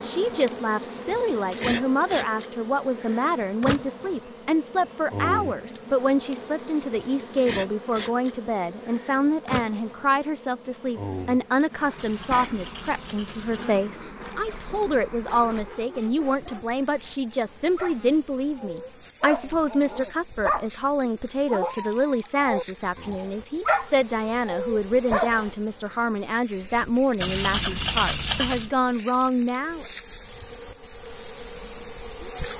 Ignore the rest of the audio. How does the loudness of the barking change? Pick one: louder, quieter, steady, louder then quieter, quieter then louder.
louder.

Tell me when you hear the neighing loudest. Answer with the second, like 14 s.
28 s.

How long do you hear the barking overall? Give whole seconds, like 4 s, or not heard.
11 s.